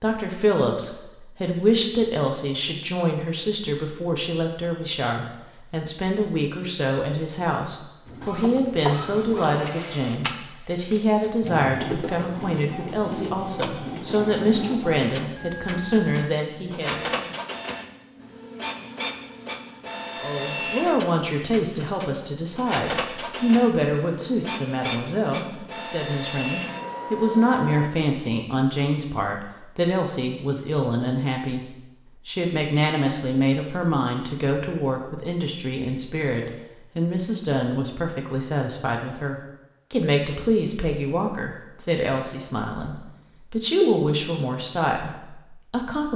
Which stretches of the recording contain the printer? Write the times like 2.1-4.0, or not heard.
8.1-27.9.